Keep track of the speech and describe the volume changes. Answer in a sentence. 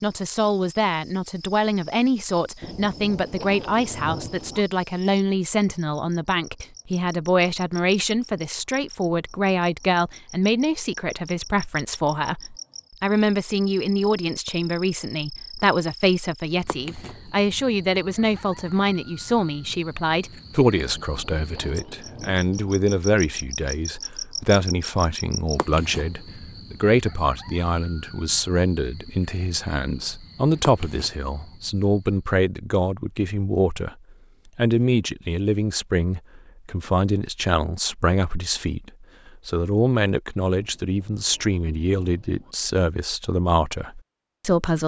The volume of the speech stays about the same.